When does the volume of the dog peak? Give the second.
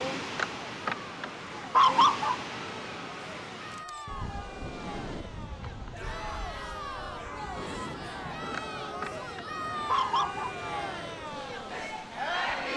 2 s.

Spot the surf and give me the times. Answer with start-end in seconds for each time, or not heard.
0.0-12.7.